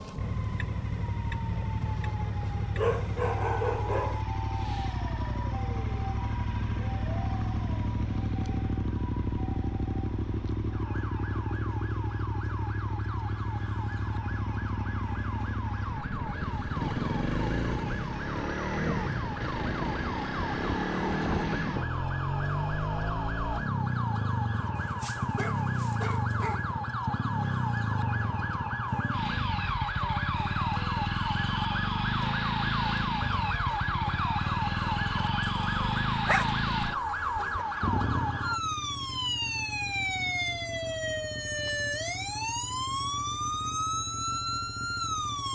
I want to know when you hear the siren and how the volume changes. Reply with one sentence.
You can hear the siren from 0.0 to 45.4 s, getting louder.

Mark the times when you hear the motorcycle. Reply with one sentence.
The motorcycle can be heard from 0.0 to 45.4 s.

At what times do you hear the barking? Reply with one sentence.
The barking can be heard from 2.8 to 4.2 s, from 24.8 to 26.6 s and from 35.4 to 37.6 s.